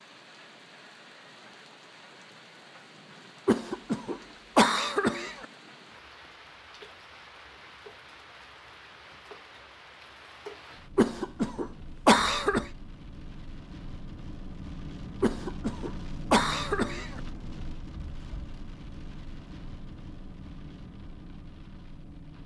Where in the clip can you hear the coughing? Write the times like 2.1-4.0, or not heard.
3.5-5.5, 10.9-12.7, 15.2-17.2.